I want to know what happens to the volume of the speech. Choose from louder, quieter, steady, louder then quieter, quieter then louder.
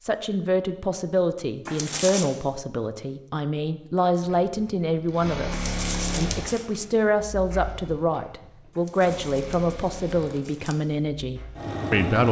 steady.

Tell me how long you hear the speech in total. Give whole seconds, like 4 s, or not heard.
12 s.